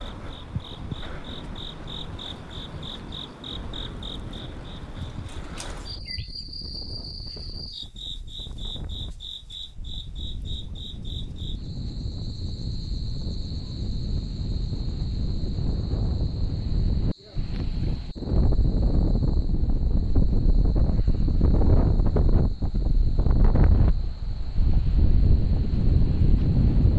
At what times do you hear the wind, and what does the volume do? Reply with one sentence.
You can hear the wind from 0.1 to 26.9 s, getting louder.